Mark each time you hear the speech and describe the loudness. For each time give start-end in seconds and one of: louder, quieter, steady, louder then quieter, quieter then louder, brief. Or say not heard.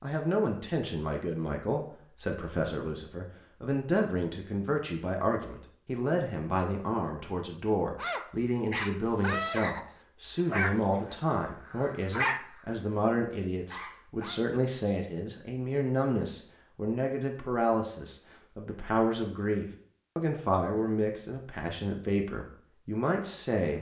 0.0-23.7 steady.